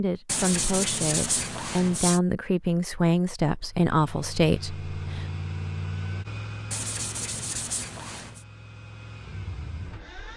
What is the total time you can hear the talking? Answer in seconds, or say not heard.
5 s.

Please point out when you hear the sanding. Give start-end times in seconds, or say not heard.
0.2-2.2, 6.7-8.4.